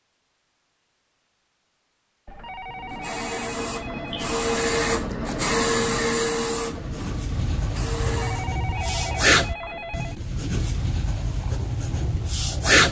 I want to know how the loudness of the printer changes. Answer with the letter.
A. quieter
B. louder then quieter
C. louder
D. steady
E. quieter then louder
B.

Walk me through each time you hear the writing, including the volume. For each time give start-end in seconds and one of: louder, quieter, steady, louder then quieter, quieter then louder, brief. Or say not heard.
6.7-12.8 louder then quieter.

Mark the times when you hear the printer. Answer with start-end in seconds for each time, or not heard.
2.7-8.5.